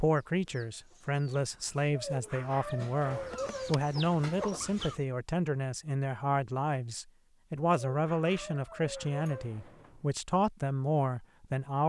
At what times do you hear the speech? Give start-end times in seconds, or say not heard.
0.0-11.8.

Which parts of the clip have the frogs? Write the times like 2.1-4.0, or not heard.
not heard.